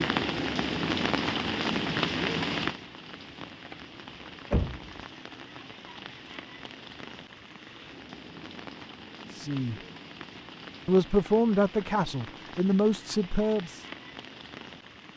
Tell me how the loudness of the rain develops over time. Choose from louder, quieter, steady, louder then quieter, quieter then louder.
quieter.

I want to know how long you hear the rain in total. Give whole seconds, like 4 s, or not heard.
15 s.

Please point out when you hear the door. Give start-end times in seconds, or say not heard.
4.1-4.9.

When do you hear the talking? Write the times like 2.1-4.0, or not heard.
9.3-9.8, 10.8-13.8.